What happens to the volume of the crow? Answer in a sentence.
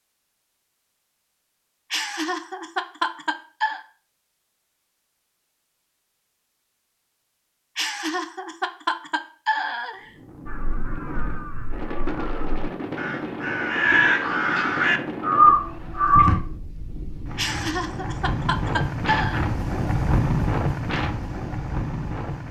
The volume of the crow goes up.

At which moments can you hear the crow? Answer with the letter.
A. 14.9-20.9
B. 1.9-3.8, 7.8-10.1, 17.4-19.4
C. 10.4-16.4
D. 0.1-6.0
C.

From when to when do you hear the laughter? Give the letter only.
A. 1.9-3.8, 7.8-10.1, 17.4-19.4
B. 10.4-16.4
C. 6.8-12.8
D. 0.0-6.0
A.